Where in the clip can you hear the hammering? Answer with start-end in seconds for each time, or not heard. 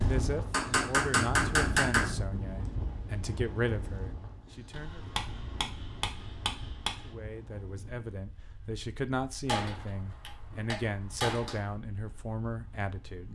0.5-2.1, 4.7-7.1, 9.4-11.8.